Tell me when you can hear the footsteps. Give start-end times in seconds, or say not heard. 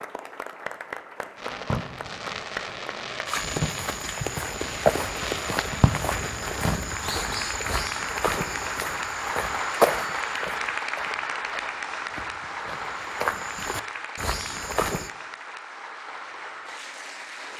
3.2-15.1.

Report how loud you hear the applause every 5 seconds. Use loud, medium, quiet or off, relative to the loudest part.
medium, loud, loud, medium.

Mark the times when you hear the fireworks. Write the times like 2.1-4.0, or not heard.
1.4-7.0.